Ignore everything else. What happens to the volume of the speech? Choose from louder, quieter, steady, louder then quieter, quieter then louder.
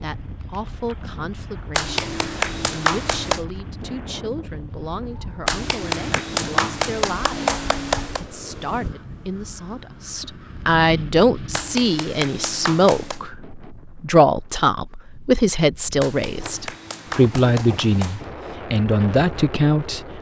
louder.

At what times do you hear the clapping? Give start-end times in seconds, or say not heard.
1.8-3.5, 5.5-8.2, 11.5-13.2, 16.0-18.2.